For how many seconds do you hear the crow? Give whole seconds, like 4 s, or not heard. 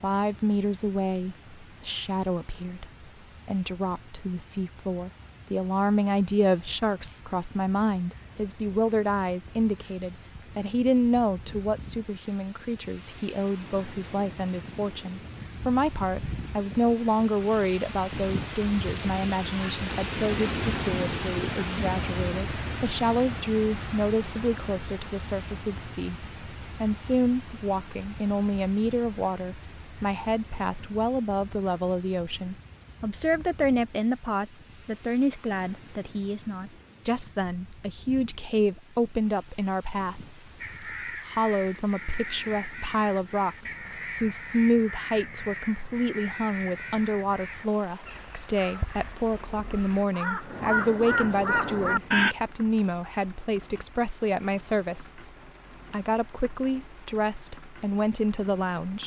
12 s.